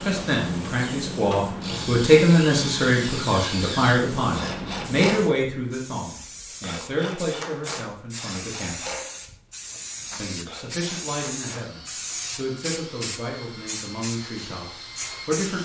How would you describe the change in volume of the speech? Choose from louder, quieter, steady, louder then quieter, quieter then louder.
quieter.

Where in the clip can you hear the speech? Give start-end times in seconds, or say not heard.
0.0-8.9, 10.2-15.6.